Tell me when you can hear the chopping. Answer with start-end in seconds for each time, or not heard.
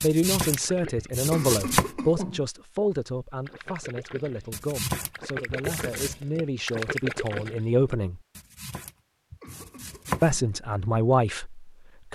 0.0-1.9, 4.5-6.2, 8.3-10.3.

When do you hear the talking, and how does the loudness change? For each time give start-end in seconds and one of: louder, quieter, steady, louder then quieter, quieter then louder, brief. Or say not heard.
0.0-8.2 quieter then louder
10.2-12.1 brief.